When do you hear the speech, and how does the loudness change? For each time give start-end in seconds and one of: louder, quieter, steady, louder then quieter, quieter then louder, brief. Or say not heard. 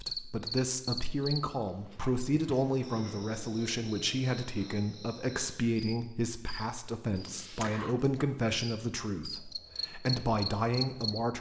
0.0-11.3 steady.